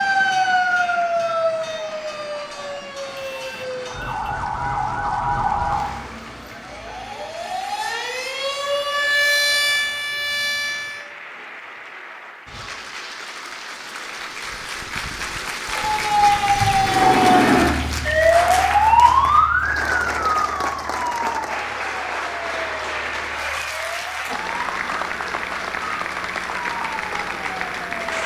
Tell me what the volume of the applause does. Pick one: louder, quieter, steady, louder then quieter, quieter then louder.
louder.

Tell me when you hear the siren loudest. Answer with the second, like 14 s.
19 s.